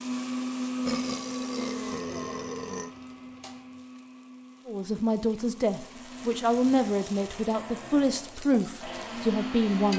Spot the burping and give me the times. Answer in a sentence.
You can hear the burping from 0.8 to 2.9 s.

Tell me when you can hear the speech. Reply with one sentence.
You can hear the speech from 4.7 to 9.9 s.